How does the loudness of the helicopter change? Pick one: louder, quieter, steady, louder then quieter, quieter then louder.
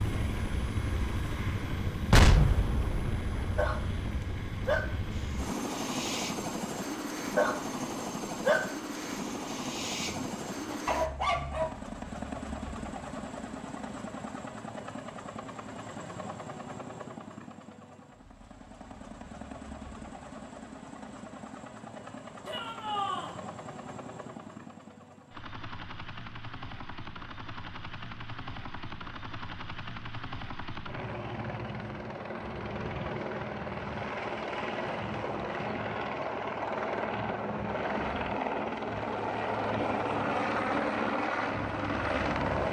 quieter then louder.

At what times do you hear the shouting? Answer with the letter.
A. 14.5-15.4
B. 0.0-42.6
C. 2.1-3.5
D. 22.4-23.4
D.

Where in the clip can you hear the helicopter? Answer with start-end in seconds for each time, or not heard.
0.0-42.6.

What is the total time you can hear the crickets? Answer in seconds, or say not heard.
not heard.